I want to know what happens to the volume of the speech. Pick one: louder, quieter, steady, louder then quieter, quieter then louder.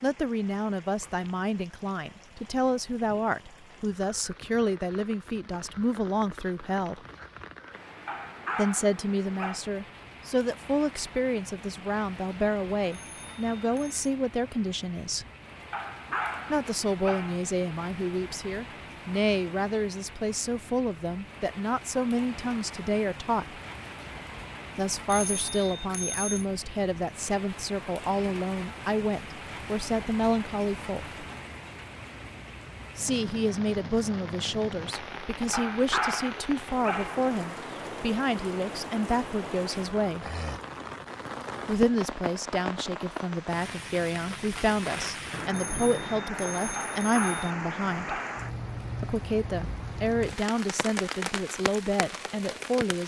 steady.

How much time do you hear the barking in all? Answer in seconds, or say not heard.
7 s.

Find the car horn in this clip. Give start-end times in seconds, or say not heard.
not heard.